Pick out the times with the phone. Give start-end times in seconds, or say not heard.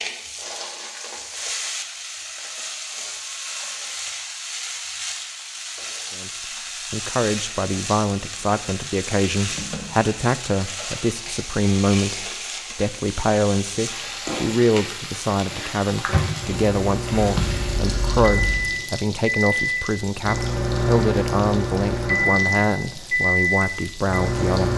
17.2-18.7.